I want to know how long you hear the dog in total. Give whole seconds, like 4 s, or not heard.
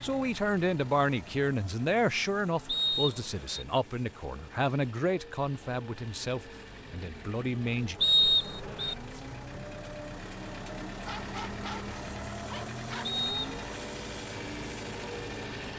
2 s.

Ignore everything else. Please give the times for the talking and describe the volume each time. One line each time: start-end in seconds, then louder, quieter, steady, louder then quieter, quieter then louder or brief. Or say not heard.
0.0-8.0 quieter.